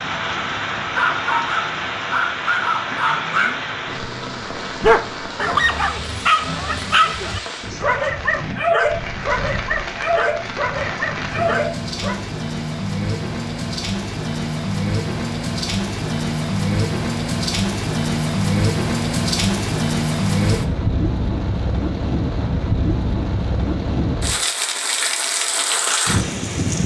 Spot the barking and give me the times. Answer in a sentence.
The barking can be heard from 0.8 to 12.2 s.